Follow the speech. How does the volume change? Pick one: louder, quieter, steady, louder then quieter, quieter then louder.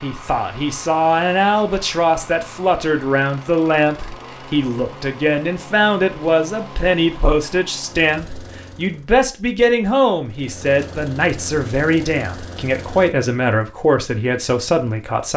steady.